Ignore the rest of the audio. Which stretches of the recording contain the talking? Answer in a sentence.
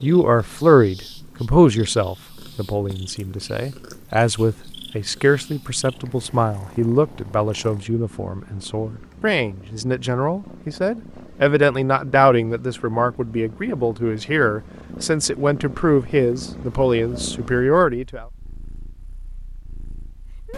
The talking can be heard from 0.0 to 18.2 s.